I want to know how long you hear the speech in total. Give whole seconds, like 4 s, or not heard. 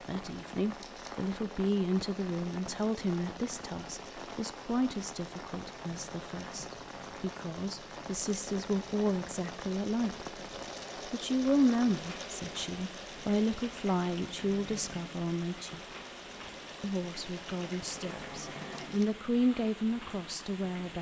19 s.